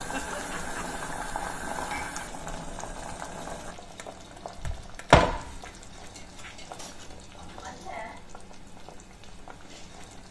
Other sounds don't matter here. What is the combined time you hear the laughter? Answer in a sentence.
You can hear the laughter for 2 seconds altogether.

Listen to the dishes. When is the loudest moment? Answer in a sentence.
The volume of the dishes peaks at 2 seconds.